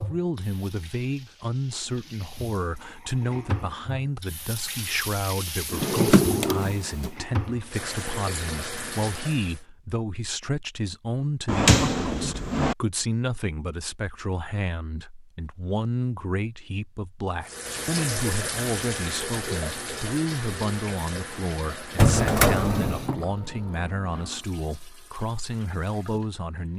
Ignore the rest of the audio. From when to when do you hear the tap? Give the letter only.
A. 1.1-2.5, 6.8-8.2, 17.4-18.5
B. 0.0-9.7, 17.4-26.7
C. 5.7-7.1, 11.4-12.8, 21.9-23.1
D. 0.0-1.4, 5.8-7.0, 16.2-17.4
B.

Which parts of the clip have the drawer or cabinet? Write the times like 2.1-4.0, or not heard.
5.7-7.1, 11.4-12.8, 21.9-23.1.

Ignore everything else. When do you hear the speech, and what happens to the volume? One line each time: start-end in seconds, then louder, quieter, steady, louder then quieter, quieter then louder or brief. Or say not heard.
0.0-26.7 steady.